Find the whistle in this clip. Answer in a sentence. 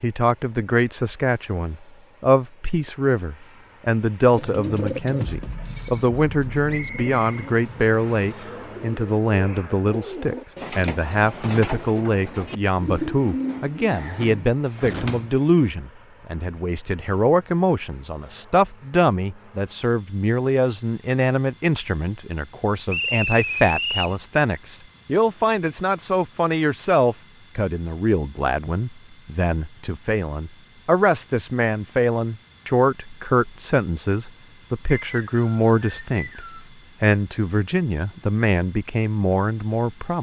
The whistle can be heard from 6.7 to 7.5 s, from 22.9 to 24.1 s and from 34.9 to 36.6 s.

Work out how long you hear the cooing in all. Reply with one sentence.
The cooing can be heard for 11 seconds in total.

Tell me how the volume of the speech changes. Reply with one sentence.
The volume of the speech stays about the same.